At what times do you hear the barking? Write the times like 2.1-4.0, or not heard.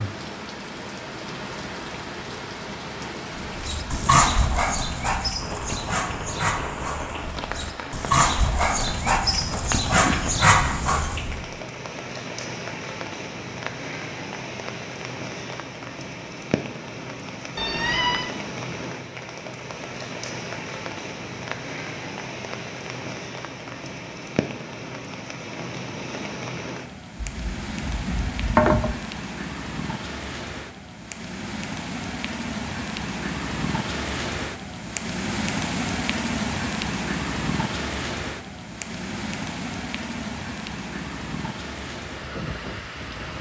3.4-11.5.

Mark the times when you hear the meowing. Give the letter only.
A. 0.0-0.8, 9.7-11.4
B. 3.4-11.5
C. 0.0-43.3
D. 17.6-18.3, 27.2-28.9
D.